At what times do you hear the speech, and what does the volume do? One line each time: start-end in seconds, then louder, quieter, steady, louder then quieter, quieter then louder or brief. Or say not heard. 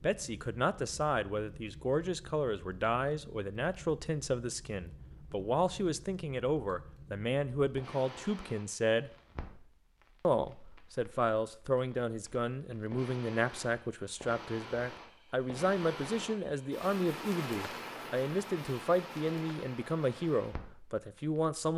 0.0-9.1 steady
10.2-21.7 steady.